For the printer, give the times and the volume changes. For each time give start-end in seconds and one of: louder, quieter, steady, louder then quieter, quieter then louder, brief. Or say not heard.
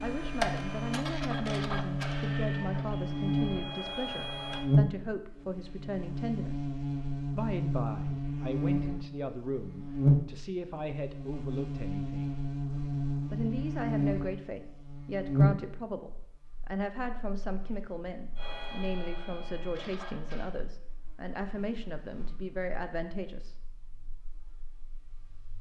0.0-4.7 quieter then louder
18.4-20.5 brief.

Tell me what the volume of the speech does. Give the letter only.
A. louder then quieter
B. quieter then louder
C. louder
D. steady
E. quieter
D.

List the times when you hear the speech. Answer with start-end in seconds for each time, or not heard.
0.0-6.7, 7.3-12.3, 13.3-23.6.